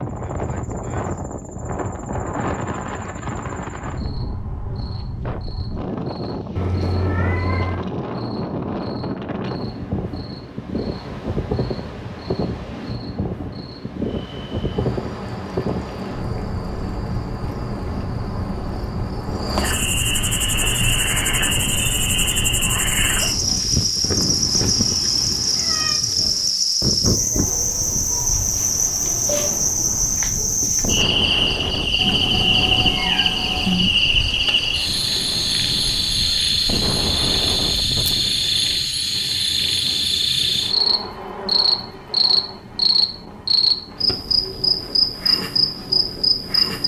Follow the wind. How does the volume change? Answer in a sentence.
The volume of the wind goes down.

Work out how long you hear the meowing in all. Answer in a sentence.
You can hear the meowing for 5 seconds altogether.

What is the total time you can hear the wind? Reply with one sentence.
The wind can be heard for 47 seconds in total.